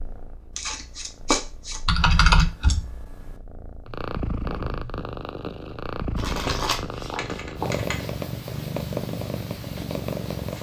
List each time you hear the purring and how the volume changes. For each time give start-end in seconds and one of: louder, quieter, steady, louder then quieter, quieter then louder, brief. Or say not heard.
0.0-10.5 louder.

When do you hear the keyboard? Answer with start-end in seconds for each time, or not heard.
1.9-3.3, 6.3-8.0.